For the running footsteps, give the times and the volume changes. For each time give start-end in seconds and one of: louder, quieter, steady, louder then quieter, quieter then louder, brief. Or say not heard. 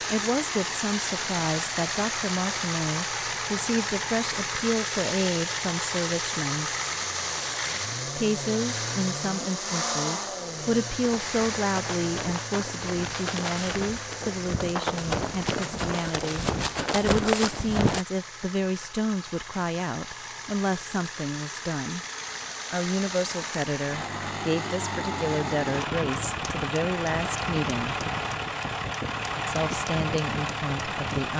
10.9-18.1 louder.